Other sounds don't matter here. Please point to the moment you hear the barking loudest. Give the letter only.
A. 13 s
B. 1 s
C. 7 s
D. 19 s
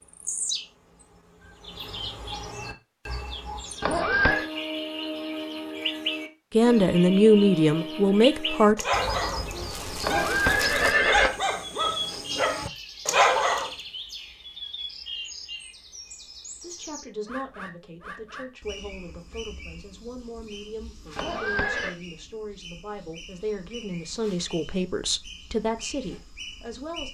A.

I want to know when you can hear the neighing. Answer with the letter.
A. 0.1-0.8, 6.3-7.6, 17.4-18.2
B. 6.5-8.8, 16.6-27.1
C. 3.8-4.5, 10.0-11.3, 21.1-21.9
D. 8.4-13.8
C.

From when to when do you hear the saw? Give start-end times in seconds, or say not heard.
not heard.